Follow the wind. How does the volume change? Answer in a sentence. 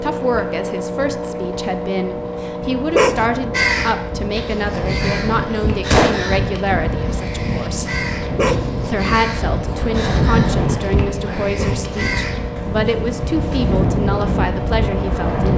The loudness of the wind goes up.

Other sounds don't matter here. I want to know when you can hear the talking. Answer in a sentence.
The talking can be heard from 0.0 to 8.0 s and from 8.8 to 15.5 s.